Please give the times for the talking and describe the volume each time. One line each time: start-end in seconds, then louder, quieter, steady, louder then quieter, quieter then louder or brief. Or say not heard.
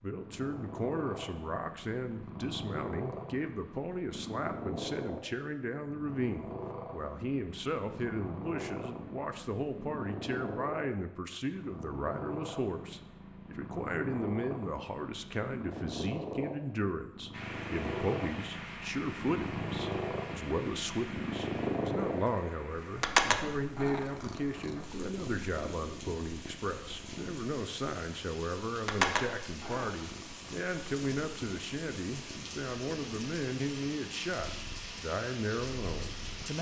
0.0-36.5 steady.